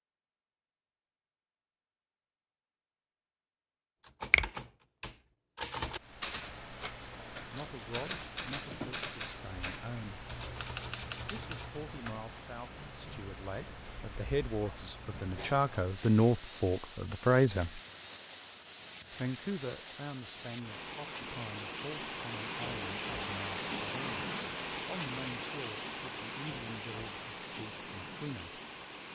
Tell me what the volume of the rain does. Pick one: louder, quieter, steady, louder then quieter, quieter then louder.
louder.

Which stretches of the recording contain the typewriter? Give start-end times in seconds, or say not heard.
4.0-12.2.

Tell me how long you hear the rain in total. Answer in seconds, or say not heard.
23 s.